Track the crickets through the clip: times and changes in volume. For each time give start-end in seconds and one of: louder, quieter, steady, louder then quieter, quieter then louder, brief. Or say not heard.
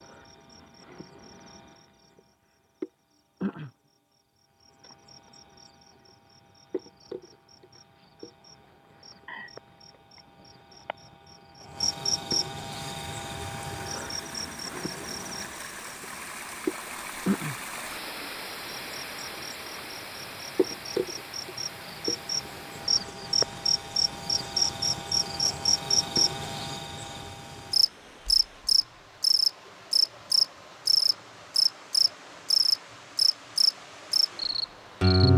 0.0-35.3 louder.